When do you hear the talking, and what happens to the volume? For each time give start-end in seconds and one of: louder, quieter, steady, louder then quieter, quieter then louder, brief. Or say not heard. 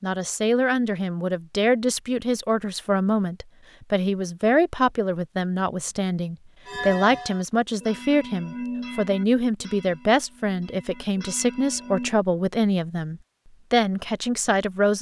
0.0-14.9 steady.